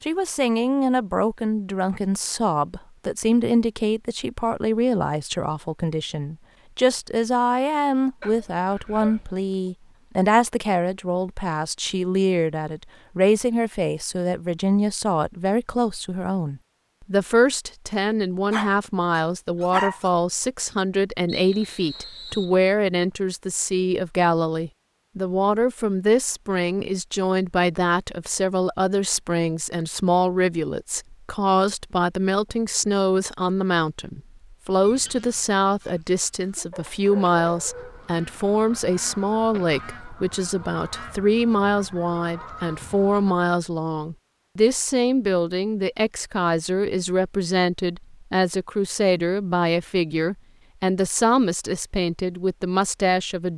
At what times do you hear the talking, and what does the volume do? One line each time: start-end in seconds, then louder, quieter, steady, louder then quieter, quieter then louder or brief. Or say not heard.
0.0-53.5 steady.